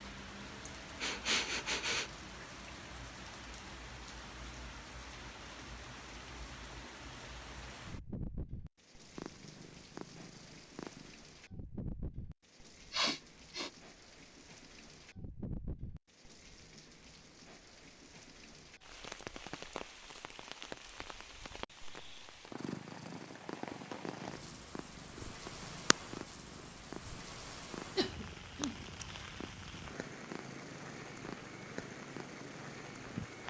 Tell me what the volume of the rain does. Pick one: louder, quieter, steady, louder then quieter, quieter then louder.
steady.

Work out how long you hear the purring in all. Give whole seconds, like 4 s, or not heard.
13 s.